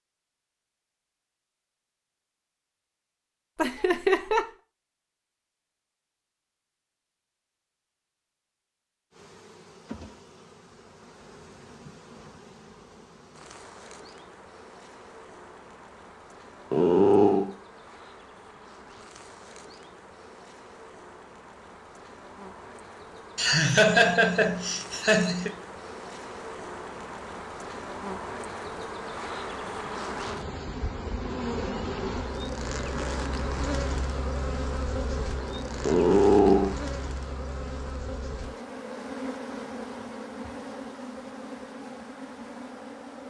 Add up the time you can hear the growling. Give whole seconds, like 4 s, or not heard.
2 s.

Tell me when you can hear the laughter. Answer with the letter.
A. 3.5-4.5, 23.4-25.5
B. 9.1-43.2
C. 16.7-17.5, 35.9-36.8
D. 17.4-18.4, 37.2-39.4
A.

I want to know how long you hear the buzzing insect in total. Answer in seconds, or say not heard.
34 s.